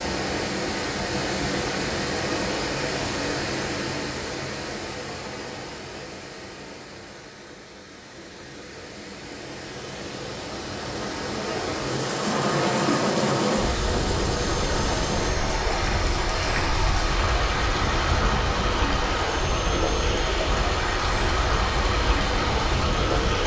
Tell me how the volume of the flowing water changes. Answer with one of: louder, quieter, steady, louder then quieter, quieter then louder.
quieter then louder.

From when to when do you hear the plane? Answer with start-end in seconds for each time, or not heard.
12.1-23.4.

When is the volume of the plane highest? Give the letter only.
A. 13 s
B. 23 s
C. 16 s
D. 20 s
A.